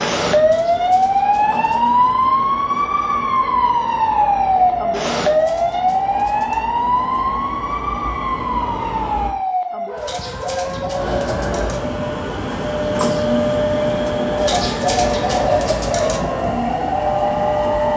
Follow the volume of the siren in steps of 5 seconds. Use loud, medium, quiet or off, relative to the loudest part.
loud, loud, medium, medium.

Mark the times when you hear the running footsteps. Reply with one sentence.
You can't hear the running footsteps here.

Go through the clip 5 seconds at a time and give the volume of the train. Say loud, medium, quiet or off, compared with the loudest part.
medium, medium, loud, loud.